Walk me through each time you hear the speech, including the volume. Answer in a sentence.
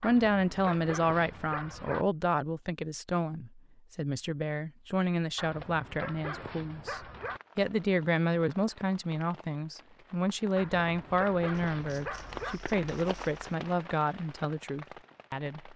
You can hear the speech from 0.0 to 15.7 s, at a steady volume.